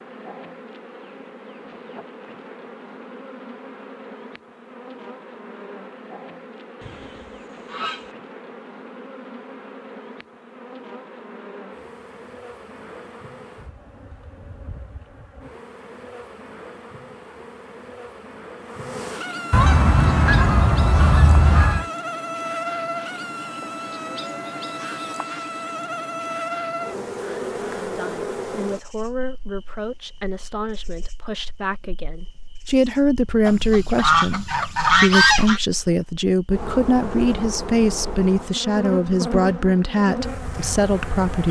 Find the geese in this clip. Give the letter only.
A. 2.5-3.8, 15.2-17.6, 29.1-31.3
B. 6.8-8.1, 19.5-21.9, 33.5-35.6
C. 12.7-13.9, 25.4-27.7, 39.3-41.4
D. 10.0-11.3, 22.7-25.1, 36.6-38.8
B.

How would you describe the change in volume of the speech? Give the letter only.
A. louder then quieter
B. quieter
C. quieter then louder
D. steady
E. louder
E.